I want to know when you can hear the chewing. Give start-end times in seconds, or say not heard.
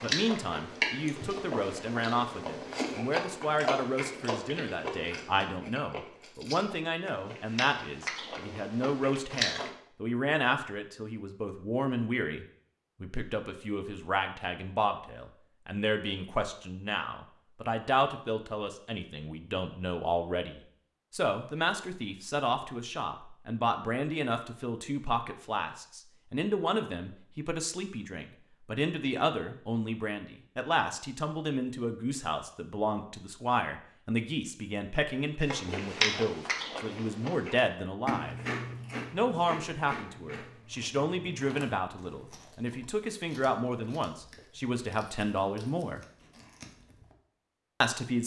0.0-9.7, 35.5-47.1.